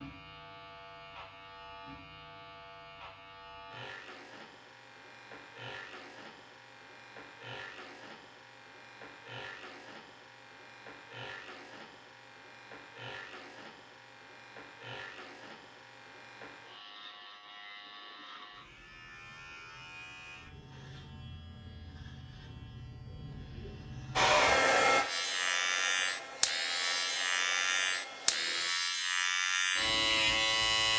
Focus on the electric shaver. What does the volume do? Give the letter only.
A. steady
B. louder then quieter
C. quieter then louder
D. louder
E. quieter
D.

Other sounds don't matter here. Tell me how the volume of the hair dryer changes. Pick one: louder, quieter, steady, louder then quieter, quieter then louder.
quieter.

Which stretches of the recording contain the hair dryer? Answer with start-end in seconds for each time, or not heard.
24.1-28.7.